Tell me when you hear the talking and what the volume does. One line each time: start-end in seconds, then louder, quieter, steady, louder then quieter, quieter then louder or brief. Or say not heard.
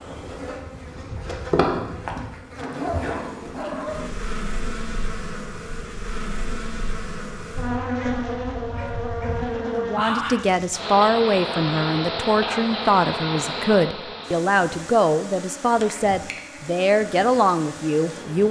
9.7-18.4 steady.